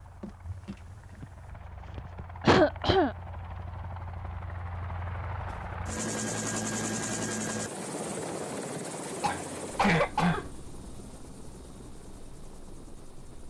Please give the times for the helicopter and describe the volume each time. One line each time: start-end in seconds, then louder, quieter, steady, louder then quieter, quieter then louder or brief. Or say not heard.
0.0-13.4 louder then quieter.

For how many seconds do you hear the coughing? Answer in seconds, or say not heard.
2 s.